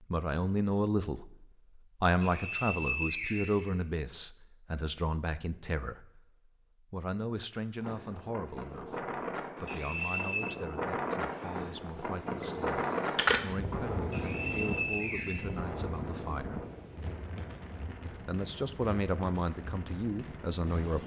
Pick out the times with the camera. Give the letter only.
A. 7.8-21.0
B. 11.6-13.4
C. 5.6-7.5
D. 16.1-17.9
B.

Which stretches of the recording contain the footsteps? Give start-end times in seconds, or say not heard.
not heard.